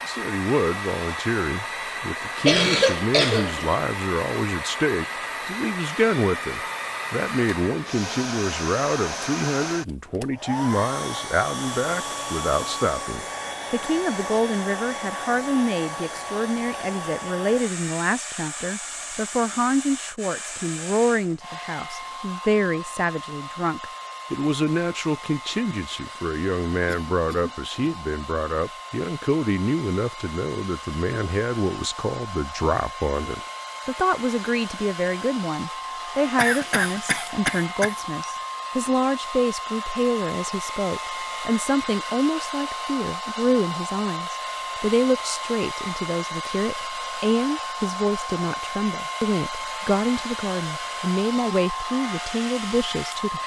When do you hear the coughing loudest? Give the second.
3 s.